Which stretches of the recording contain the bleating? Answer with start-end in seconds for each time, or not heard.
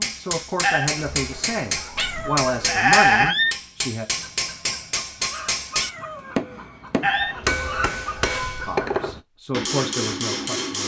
0.6-3.4, 7.0-8.8.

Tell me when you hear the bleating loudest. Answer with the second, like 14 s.
3 s.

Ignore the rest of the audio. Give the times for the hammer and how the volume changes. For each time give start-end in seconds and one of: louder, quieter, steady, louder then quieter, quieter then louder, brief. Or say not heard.
0.0-10.8 steady.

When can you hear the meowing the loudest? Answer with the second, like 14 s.
3 s.